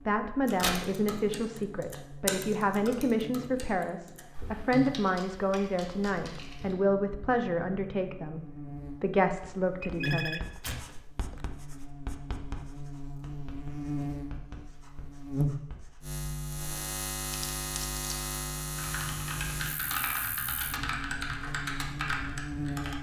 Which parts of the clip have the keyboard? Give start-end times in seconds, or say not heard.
0.5-6.8, 18.8-22.9.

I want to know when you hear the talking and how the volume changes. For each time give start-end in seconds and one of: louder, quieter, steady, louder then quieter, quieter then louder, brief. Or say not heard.
0.1-10.5 steady.